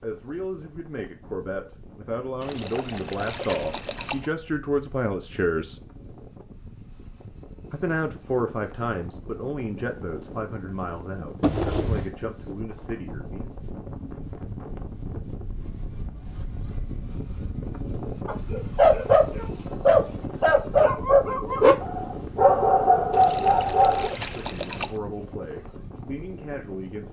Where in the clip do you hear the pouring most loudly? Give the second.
12 s.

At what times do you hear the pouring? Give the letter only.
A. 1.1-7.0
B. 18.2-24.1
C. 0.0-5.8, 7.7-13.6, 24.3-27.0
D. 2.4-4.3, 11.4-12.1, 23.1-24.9
D.